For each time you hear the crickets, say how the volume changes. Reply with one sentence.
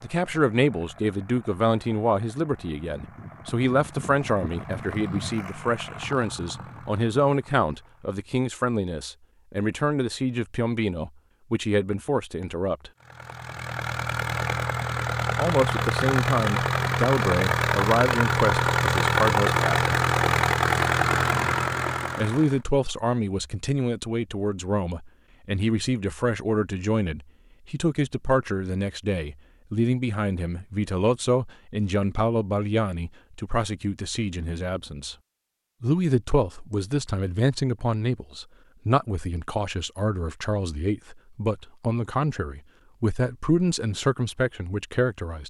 The crickets can't be heard in this clip.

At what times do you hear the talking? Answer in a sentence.
The talking can be heard from 0.0 to 12.9 s, from 15.3 to 19.9 s, from 22.1 to 35.1 s and from 35.8 to 45.4 s.